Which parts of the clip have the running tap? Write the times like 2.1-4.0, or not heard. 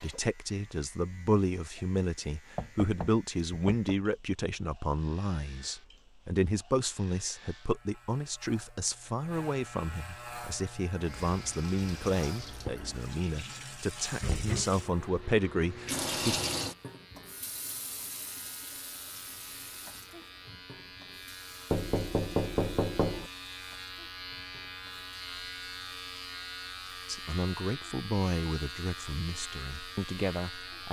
10.2-30.8.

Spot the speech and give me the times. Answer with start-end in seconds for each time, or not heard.
0.0-16.4, 27.1-30.8.